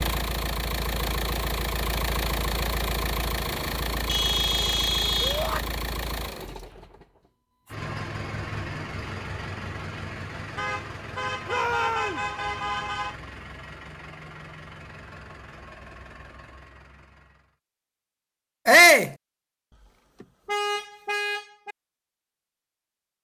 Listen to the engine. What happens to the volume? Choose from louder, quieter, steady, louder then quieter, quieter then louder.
quieter.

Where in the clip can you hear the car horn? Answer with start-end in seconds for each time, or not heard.
4.0-5.5, 10.6-13.2, 20.2-21.8.